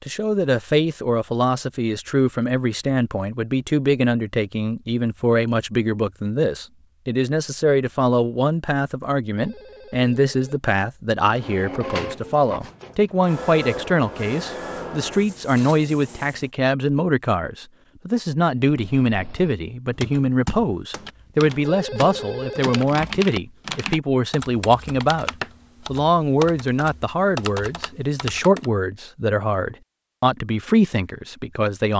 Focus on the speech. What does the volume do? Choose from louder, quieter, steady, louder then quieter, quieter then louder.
steady.